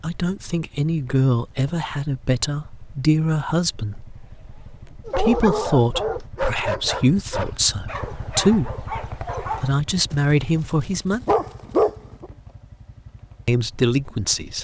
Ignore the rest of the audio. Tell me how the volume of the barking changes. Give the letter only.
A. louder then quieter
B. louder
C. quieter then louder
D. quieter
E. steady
C.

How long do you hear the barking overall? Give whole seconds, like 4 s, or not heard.
7 s.